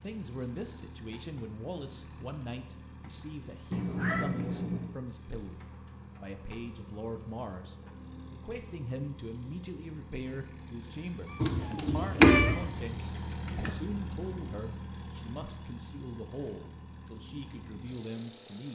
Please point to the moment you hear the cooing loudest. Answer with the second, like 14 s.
12 s.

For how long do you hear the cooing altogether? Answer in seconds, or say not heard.
2 s.